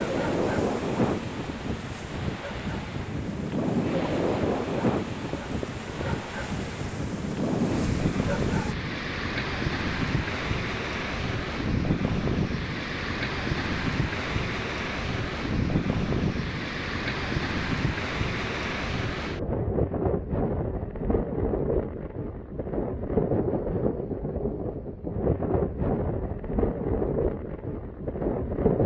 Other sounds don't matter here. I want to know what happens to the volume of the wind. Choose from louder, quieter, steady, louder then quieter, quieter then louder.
steady.